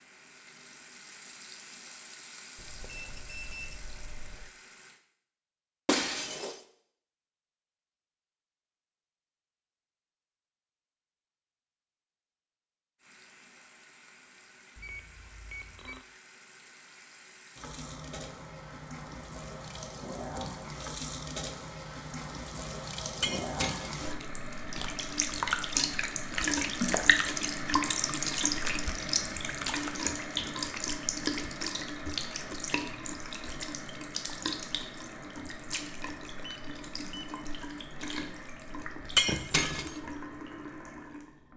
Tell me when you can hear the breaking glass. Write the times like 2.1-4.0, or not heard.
5.8-6.6, 23.2-24.0, 39.1-39.9.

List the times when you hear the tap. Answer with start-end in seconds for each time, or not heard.
0.0-5.0, 13.0-41.5.